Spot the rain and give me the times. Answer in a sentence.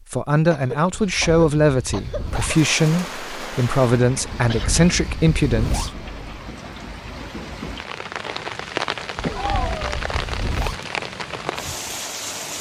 You can hear the rain from 2.4 to 12.5 s.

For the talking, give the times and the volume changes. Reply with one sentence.
The talking can be heard from 0.1 to 5.9 s, at a steady volume.